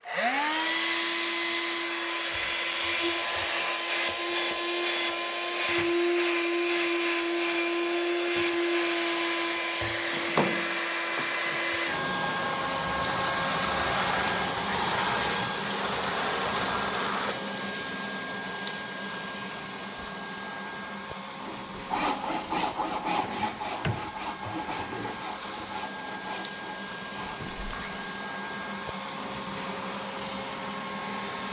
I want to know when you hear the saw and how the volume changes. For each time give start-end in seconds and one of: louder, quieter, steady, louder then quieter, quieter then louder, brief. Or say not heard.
21.4-28.1 quieter.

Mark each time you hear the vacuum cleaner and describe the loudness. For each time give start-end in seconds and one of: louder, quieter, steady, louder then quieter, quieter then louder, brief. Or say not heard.
0.0-31.4 quieter.